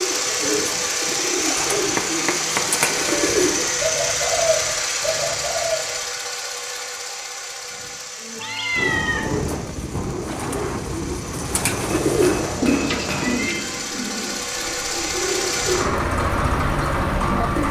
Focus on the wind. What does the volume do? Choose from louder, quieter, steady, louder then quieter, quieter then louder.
quieter then louder.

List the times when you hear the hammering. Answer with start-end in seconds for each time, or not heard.
1.7-3.1, 11.9-13.4.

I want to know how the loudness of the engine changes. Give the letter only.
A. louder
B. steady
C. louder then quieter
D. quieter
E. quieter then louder
E.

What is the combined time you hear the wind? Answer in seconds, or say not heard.
9 s.